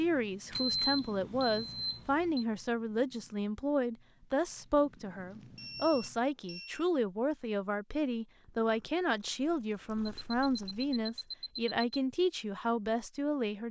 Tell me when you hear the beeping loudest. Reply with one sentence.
The volume of the beeping peaks at 1 second.